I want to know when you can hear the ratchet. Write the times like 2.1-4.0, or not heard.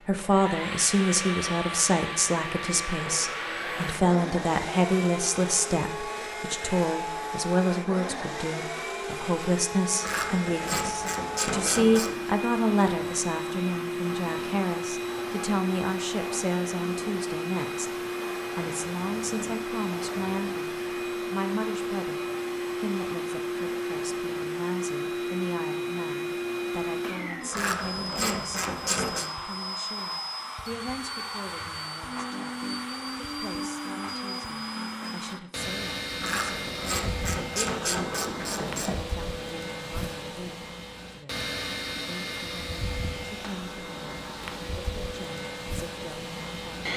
10.0-12.3, 27.5-29.3, 36.2-39.0.